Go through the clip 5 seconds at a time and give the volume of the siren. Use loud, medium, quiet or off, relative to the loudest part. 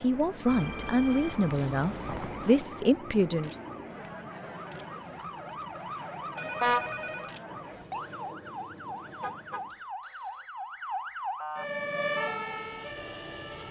medium, medium, loud.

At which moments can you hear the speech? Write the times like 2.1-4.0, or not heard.
0.0-3.5.